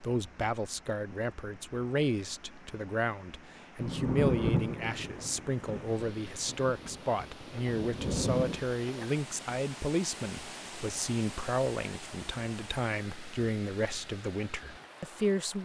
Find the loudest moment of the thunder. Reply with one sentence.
The loudest moment of the thunder is at 4 seconds.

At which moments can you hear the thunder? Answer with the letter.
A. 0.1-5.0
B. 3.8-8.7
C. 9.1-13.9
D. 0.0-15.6
B.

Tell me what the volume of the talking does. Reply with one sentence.
The volume of the talking stays about the same.